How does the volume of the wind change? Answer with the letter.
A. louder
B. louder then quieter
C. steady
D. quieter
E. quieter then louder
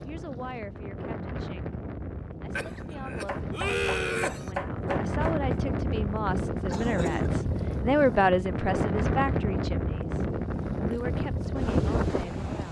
A.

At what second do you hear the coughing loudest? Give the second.
4 s.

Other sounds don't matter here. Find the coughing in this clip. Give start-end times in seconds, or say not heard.
2.5-4.5, 6.7-7.3.